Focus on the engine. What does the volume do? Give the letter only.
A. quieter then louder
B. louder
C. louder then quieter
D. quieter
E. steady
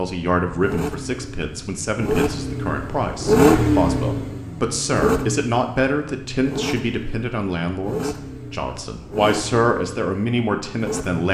C.